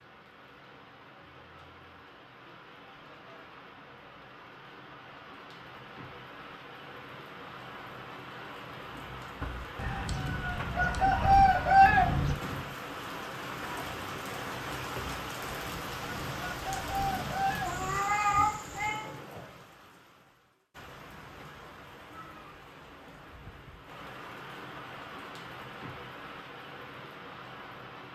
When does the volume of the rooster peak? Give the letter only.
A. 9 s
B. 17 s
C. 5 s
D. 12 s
D.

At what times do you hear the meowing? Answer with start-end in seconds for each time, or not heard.
17.6-19.1.